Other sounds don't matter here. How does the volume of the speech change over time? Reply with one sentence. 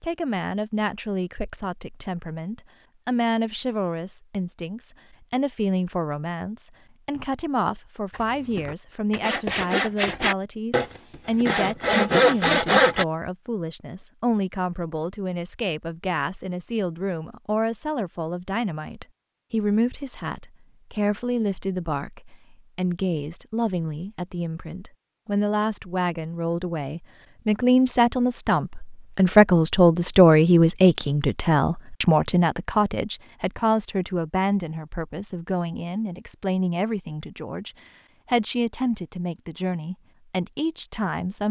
The loudness of the speech goes up, then down.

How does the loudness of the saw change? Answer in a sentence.
The loudness of the saw goes up.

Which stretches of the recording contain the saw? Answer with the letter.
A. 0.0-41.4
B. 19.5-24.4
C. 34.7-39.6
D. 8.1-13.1
D.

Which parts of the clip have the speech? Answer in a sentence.
You can hear the speech from 0.0 to 41.4 s.